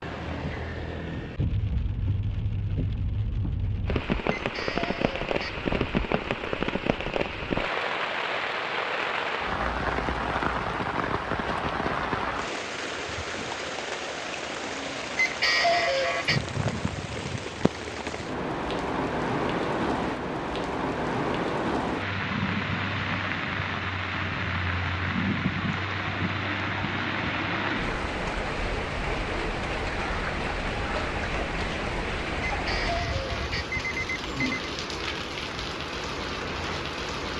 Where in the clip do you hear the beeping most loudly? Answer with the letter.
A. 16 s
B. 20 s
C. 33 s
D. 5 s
A.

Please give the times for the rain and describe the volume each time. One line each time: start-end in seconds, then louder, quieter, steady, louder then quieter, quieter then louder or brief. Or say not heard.
0.0-37.3 steady.